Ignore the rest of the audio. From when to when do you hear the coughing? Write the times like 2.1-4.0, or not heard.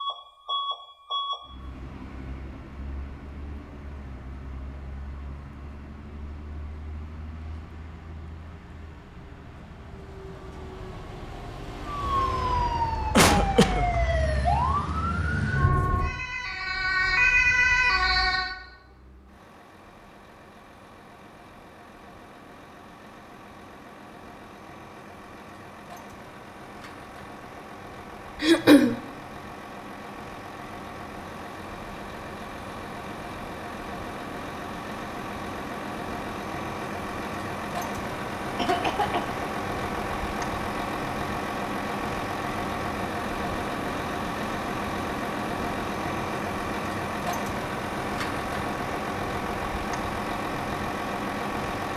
13.2-13.8, 28.4-28.9, 38.5-39.4.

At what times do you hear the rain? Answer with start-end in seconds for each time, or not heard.
not heard.